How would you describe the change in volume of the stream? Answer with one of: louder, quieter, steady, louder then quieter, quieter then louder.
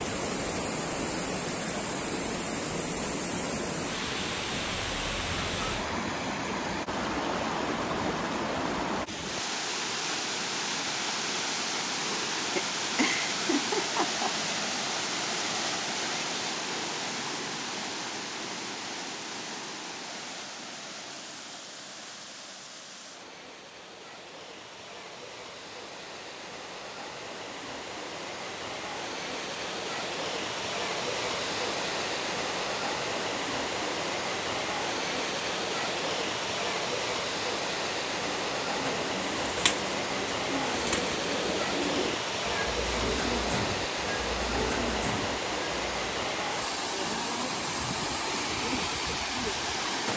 quieter then louder.